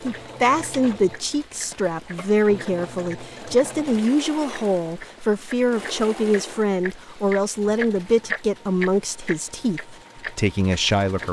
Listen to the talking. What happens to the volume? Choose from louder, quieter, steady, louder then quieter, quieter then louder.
steady.